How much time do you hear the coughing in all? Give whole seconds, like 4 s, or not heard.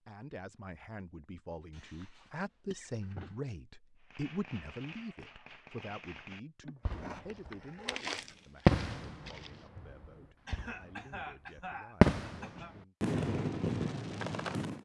6 s.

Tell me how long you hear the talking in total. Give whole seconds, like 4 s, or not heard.
13 s.